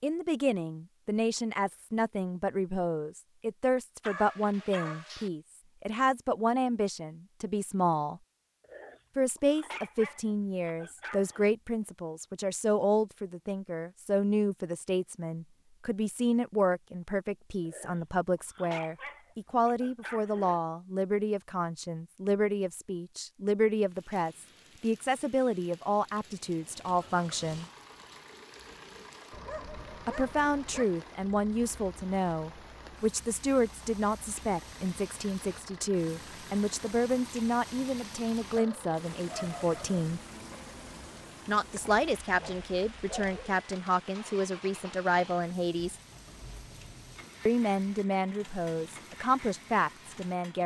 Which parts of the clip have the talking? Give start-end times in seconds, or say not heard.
0.0-8.2, 9.2-27.6, 30.1-40.2, 41.5-46.0, 47.5-50.6.